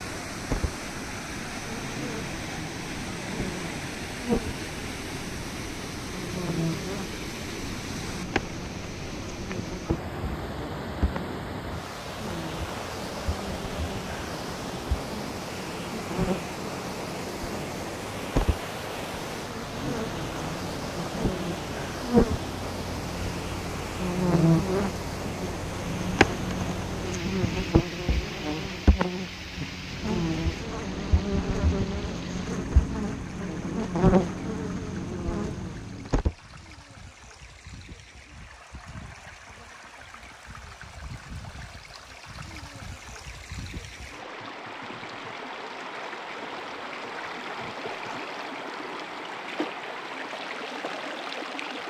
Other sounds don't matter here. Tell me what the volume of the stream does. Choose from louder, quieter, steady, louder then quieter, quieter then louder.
quieter then louder.